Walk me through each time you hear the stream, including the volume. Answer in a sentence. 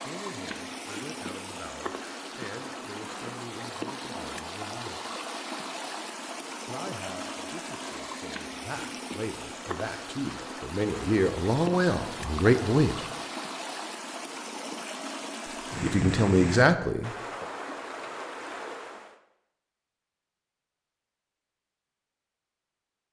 You can hear the stream from 0.0 to 19.1 s, at a steady volume.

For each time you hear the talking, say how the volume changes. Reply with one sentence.
The talking can be heard from 0.1 to 5.0 s, at a steady volume; from 6.7 to 13.1 s, getting louder; and briefly from 15.8 to 17.4 s.